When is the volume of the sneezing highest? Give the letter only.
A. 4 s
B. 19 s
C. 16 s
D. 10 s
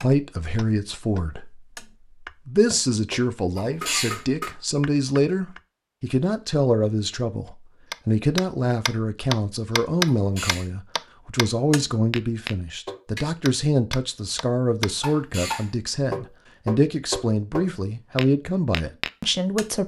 A.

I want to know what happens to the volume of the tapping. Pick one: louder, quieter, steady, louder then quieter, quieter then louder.
louder.